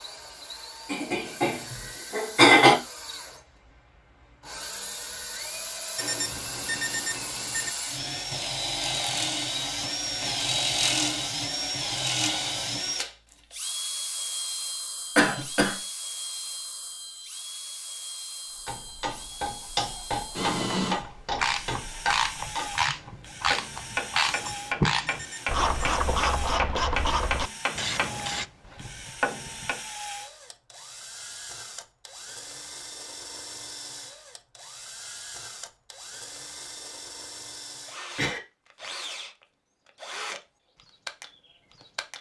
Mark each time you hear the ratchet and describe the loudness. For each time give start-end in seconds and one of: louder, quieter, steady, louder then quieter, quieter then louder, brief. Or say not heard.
20.4-28.4 steady.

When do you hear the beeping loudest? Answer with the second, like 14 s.
7 s.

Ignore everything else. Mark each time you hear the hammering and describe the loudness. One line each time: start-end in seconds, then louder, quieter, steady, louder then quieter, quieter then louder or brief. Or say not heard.
18.6-29.8 steady.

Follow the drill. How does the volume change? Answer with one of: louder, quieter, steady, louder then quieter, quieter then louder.
louder then quieter.